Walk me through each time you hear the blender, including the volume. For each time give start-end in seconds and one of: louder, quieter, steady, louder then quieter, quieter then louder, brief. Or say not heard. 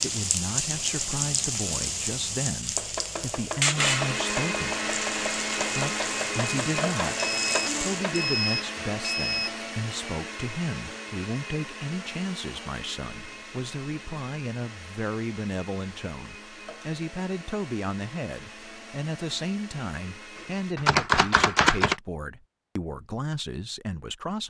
3.8-20.8 quieter.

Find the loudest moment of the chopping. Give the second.
21 s.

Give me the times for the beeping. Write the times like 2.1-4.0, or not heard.
7.2-9.6.